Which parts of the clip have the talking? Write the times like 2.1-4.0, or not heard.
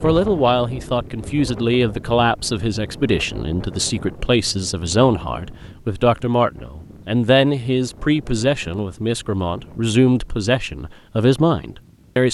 0.0-12.2.